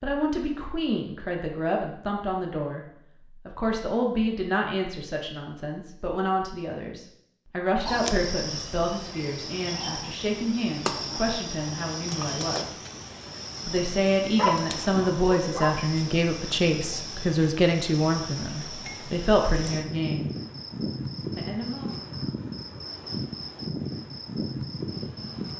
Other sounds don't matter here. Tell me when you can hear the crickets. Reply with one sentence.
You can hear the crickets from 7.8 to 25.5 s.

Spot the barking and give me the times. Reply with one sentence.
You can hear the barking from 14.3 to 15.8 s.